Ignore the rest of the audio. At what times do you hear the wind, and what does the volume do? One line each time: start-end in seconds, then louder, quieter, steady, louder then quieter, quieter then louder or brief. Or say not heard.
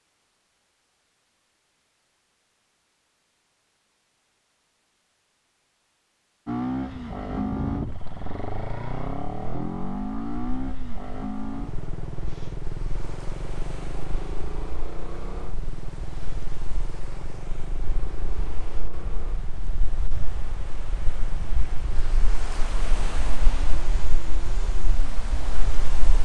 7.2-26.1 quieter then louder.